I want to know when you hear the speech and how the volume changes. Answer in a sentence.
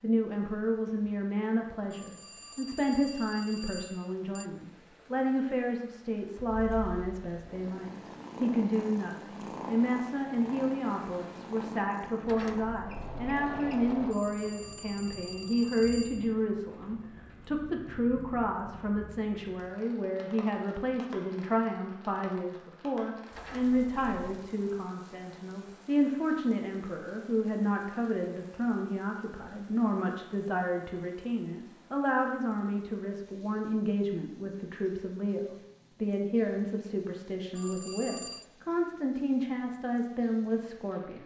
You can hear the speech from 0.0 to 41.2 s, at a steady volume.